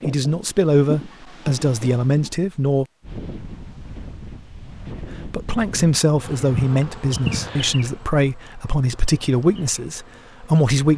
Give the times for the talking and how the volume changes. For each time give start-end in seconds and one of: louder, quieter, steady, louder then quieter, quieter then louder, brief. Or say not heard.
0.1-2.9 brief
5.0-10.9 quieter.